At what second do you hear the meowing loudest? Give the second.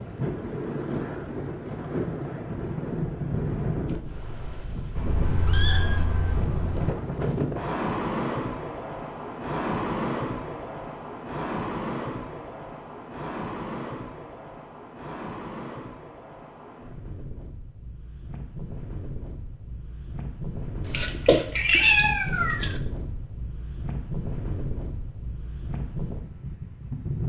22 s.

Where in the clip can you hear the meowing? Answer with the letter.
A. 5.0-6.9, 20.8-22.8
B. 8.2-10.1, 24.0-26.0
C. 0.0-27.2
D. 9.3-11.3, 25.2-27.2
A.